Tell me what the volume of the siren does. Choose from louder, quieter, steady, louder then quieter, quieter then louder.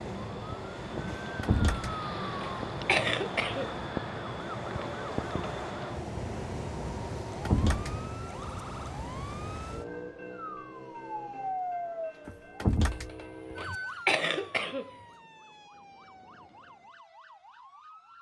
quieter.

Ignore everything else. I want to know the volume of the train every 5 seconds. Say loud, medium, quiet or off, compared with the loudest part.
loud, loud, quiet, quiet.